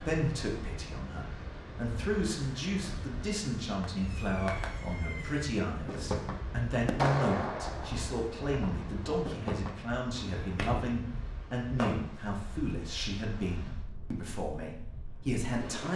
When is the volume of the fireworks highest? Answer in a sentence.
The loudest moment of the fireworks is at 7 seconds.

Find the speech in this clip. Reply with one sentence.
The speech can be heard from 0.0 to 15.9 s.